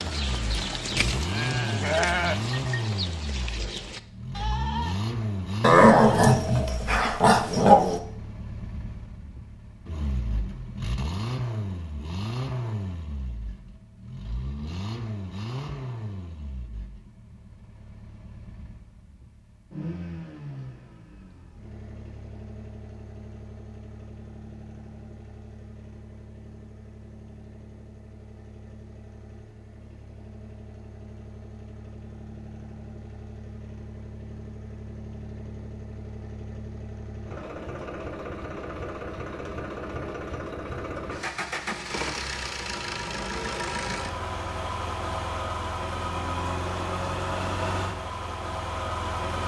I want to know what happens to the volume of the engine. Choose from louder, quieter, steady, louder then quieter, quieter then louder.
quieter then louder.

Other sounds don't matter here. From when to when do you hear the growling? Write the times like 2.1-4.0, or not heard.
5.6-8.0.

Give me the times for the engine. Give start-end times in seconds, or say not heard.
0.0-49.4.